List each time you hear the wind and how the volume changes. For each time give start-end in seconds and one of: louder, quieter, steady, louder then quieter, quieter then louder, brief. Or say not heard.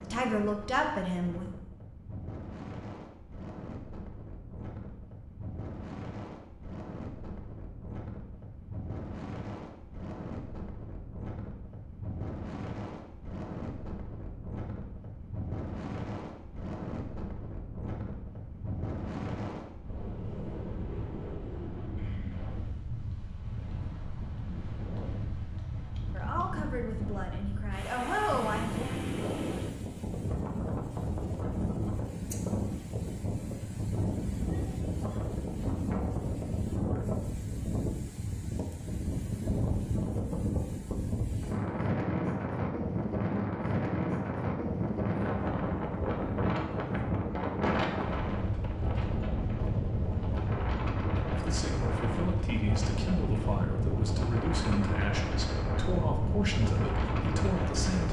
0.0-58.0 louder.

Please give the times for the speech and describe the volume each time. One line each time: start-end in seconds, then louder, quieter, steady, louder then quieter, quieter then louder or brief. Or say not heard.
0.0-1.4 brief
26.1-28.8 brief
51.3-58.0 steady.